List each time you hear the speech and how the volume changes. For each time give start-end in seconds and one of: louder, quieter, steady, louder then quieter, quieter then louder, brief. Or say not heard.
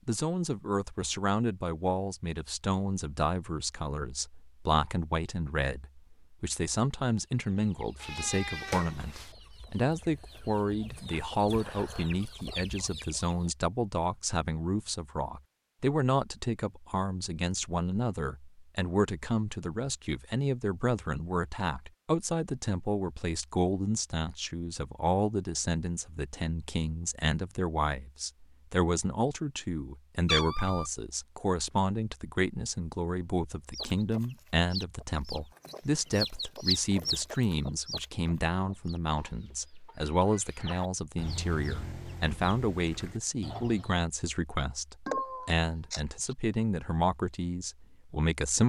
0.1-48.6 steady.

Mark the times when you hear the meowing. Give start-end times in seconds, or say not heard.
8.0-9.3, 30.2-30.9, 45.0-46.4.